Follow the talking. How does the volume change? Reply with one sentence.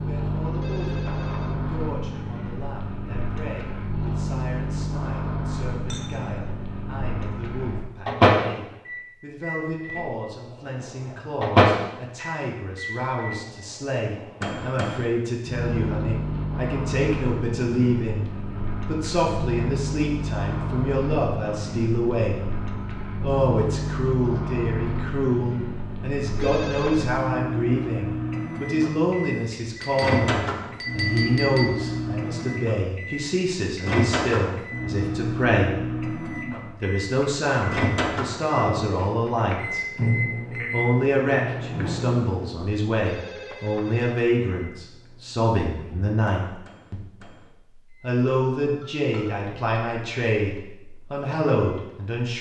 The volume of the talking goes up.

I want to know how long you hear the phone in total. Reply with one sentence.
You can hear the phone for 3 seconds altogether.